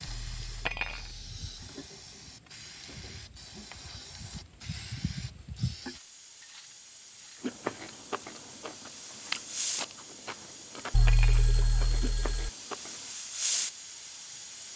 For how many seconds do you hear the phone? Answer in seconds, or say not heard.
3 s.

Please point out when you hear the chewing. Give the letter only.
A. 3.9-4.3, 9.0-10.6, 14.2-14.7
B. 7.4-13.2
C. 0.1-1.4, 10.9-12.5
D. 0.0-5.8
B.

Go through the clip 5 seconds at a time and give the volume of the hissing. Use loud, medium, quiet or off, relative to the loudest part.
medium, loud, loud.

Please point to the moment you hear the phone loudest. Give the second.
11 s.